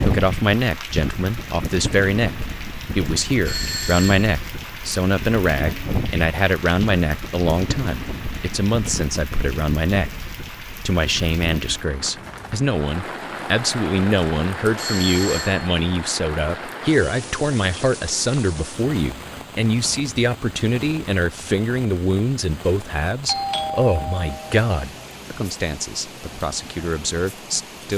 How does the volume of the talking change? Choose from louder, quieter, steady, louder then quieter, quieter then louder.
steady.